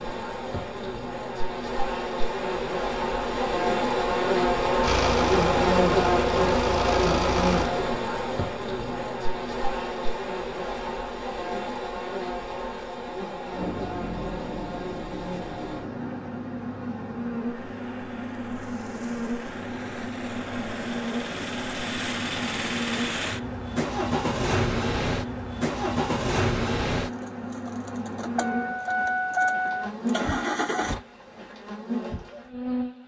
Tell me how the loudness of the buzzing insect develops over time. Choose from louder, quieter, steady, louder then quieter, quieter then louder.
quieter.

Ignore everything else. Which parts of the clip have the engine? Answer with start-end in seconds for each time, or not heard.
4.8-7.7, 13.5-31.0.